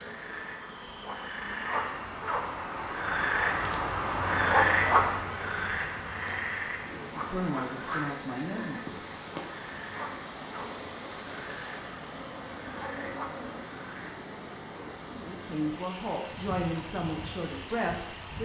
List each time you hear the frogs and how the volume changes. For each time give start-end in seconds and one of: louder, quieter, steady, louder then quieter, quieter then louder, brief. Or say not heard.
0.0-14.1 louder then quieter.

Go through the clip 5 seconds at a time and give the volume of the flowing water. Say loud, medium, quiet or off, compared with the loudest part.
off, loud, loud, loud.